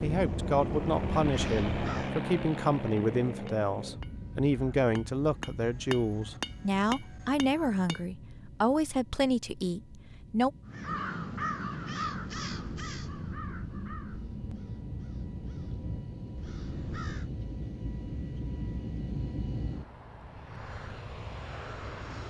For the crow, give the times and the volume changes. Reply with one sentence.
The crow can be heard briefly from 0.0 to 2.1 s; and from 10.7 to 17.4 s, getting quieter.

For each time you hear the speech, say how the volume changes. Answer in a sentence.
You can hear the speech from 0.0 to 10.5 s, at a steady volume.